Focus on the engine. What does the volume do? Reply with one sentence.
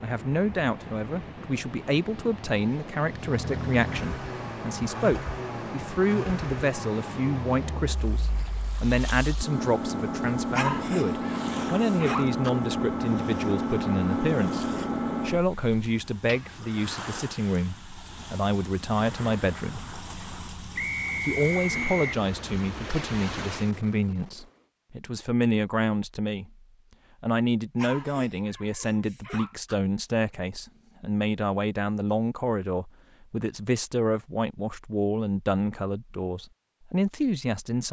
The loudness of the engine goes up.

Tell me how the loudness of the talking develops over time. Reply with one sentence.
The volume of the talking stays about the same.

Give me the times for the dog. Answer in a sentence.
You can hear the dog from 10.5 to 12.5 s and from 27.8 to 29.8 s.